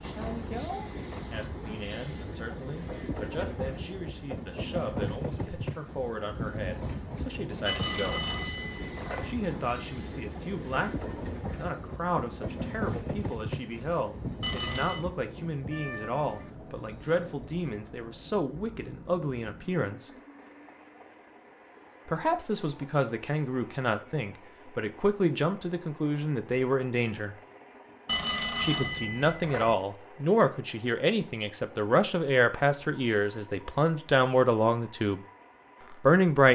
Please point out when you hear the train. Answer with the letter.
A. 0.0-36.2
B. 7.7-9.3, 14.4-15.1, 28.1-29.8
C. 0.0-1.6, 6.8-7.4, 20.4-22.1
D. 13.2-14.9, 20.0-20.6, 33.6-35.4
A.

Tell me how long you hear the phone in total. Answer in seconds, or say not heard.
4 s.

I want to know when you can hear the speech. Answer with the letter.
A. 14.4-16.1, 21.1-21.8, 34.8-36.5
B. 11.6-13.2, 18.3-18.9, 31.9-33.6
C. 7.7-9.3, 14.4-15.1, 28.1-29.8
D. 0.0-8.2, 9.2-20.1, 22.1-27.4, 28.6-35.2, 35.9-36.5
D.